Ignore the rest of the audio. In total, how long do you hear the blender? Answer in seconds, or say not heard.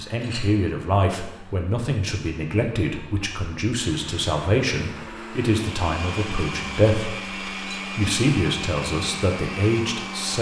10 s.